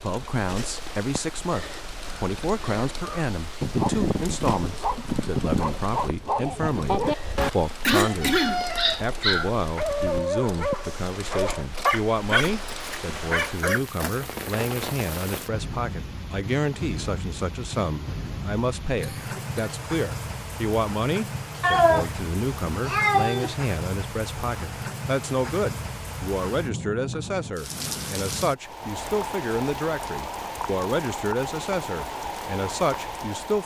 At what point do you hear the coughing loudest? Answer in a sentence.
The volume of the coughing peaks at 8 seconds.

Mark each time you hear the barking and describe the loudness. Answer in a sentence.
You can hear the barking from 3.0 to 13.8 s, at a steady volume.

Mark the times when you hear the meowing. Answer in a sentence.
The meowing can be heard from 7.3 to 9.0 s and from 21.6 to 23.5 s.